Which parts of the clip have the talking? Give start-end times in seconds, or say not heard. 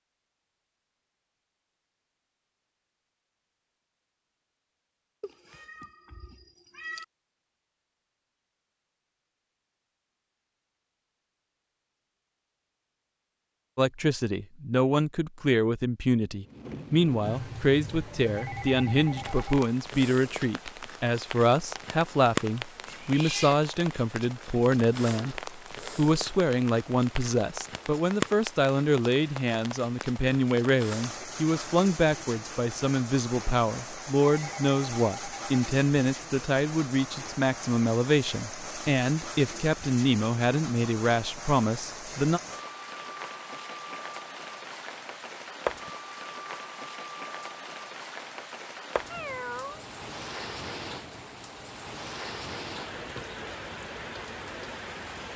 13.8-42.4.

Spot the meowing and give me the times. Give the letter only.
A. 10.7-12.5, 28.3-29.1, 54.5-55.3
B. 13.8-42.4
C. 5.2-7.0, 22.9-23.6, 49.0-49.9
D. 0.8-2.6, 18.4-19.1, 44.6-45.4
C.